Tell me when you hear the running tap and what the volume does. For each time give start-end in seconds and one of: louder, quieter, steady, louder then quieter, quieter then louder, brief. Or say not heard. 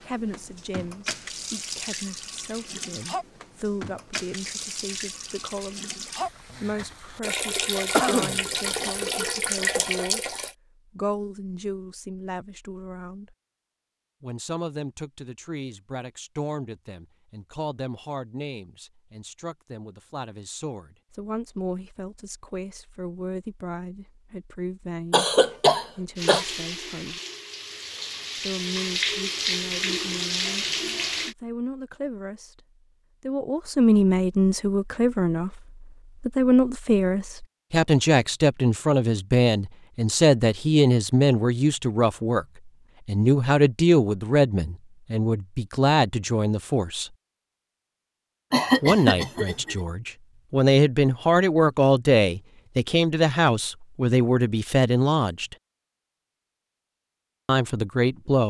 0.0-10.6 louder
26.1-31.4 louder.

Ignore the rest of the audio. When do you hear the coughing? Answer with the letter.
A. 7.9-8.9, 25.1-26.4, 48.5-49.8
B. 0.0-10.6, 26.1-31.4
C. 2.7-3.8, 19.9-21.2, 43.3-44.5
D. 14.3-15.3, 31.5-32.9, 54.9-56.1
A.